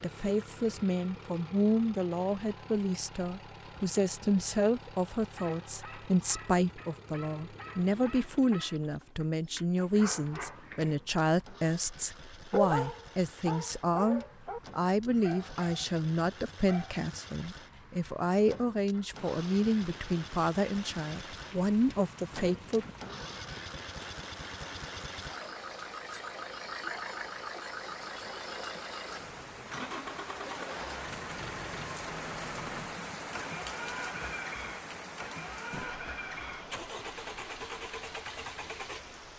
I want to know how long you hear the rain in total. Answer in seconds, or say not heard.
20 s.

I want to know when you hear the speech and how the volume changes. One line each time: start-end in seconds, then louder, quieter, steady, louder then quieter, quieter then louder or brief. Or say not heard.
0.0-22.9 steady.